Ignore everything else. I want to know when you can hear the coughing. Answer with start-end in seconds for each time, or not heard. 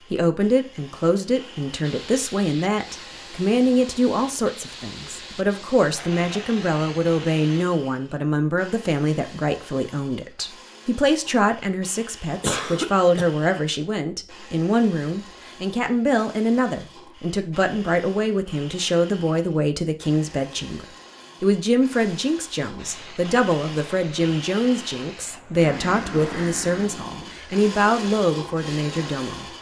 12.4-13.2.